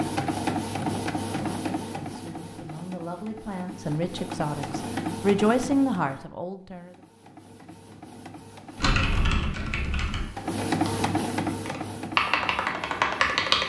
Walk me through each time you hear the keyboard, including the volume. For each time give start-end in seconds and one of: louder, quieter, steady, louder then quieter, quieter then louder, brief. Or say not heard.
8.8-13.6 quieter then louder.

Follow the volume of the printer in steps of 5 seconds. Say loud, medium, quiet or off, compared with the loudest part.
loud, medium, loud.